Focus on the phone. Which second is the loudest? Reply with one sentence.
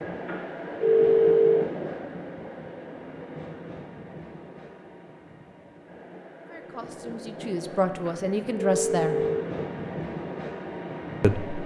The volume of the phone peaks at 1 second.